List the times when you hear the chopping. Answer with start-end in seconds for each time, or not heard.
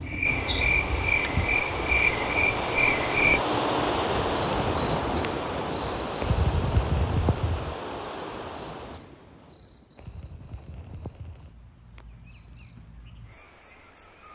not heard.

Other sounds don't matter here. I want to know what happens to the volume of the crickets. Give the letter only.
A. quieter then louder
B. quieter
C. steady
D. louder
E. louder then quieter
B.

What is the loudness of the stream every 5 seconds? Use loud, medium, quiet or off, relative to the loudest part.
loud, medium, off.